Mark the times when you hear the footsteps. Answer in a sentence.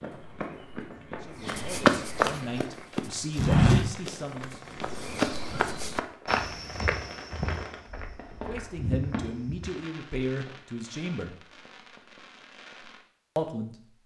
You can hear the footsteps from 0.0 to 9.7 s.